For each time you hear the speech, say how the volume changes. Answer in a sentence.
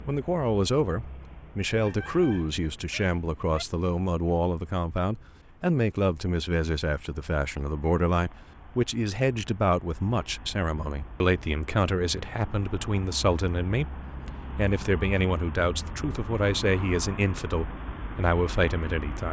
The speech can be heard from 0.1 to 19.2 s, at a steady volume.